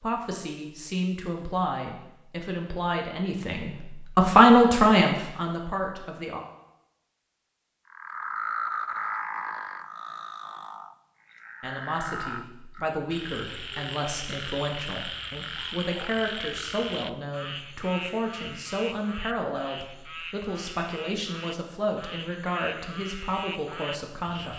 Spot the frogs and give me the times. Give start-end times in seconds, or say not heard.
7.9-24.5.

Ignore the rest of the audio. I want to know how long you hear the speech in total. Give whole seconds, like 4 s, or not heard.
19 s.